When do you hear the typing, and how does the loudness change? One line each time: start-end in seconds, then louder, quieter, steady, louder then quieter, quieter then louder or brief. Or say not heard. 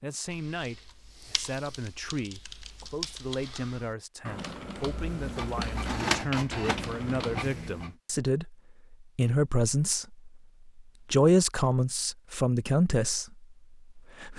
0.2-7.5 louder.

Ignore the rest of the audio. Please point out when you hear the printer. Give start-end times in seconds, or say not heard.
4.8-7.9.